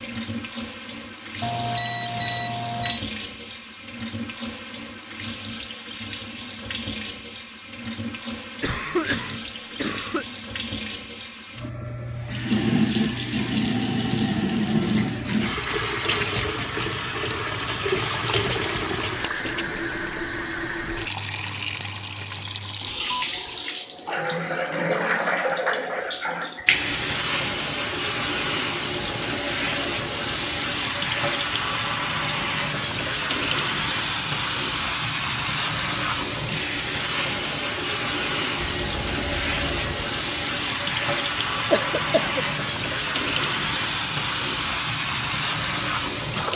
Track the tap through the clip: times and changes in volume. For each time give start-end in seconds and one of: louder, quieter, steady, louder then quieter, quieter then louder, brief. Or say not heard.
0.0-46.5 louder.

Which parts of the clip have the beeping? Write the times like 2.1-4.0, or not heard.
1.4-3.0, 22.9-23.7, 38.5-40.1.